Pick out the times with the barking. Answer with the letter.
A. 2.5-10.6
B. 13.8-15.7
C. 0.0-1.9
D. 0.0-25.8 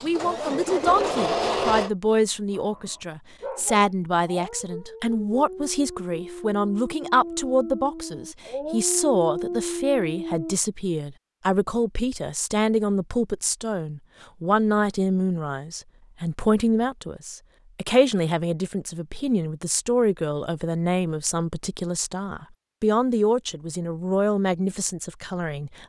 A.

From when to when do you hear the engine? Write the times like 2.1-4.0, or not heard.
0.0-1.9.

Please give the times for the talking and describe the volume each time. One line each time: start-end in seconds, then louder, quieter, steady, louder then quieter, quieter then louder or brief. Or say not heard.
0.0-25.8 steady.